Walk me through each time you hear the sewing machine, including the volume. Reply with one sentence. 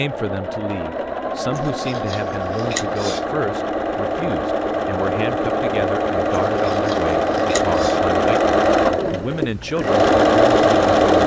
The sewing machine can be heard from 0.0 to 11.2 s, getting louder.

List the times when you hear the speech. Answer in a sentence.
You can hear the speech from 0.0 to 11.2 s.